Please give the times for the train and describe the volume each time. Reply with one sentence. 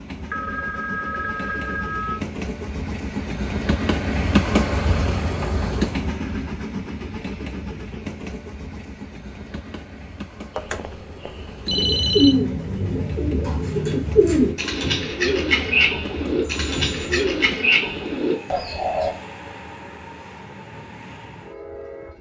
The train can be heard from 0.0 to 22.1 s, getting quieter.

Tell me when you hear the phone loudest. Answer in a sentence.
The volume of the phone peaks at 12 seconds.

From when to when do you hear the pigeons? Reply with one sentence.
The pigeons can be heard from 11.7 to 19.1 s.